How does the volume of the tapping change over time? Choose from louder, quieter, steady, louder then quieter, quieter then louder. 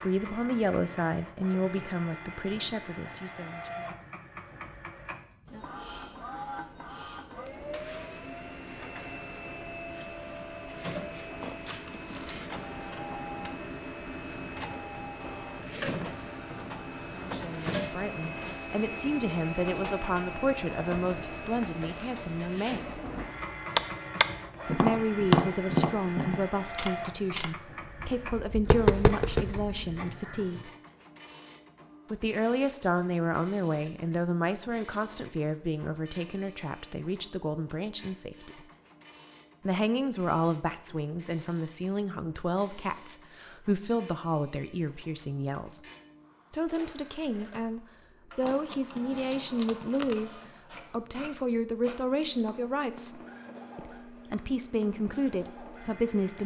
quieter then louder.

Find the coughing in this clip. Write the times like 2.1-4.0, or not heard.
not heard.